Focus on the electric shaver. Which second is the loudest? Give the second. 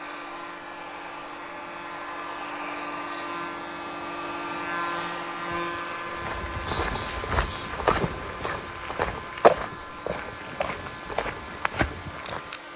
5 s.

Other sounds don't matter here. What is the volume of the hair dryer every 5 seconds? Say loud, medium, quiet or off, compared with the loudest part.
loud, loud, medium.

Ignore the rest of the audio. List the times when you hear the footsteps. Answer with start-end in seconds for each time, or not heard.
6.1-12.6.